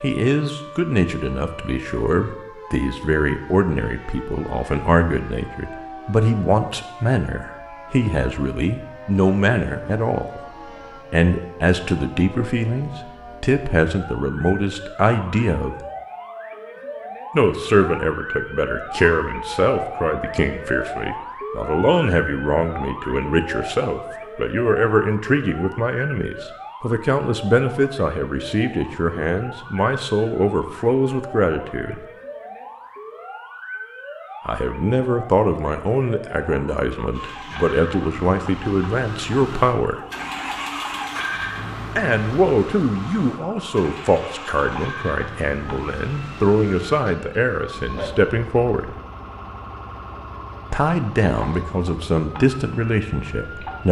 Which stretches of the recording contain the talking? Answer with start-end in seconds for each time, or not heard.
0.0-10.4, 11.1-15.8, 17.3-32.0, 34.5-40.0, 42.0-49.0, 50.7-53.8.